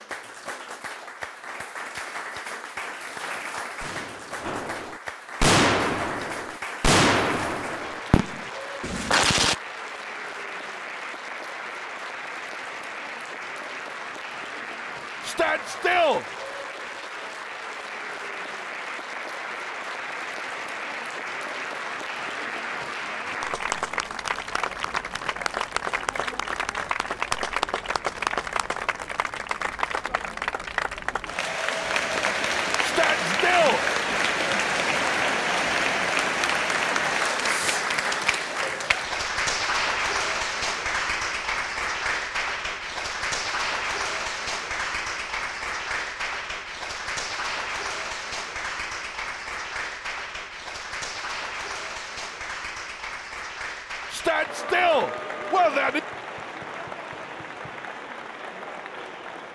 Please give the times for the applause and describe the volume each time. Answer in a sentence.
You can hear the applause from 0.0 to 59.5 s, getting louder then quieter.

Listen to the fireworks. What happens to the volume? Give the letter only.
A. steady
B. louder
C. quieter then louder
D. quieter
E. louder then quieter
E.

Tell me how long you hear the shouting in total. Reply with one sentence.
The shouting can be heard for 4 seconds in total.